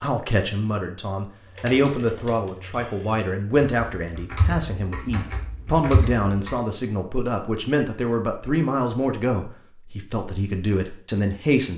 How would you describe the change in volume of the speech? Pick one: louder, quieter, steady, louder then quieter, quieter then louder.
steady.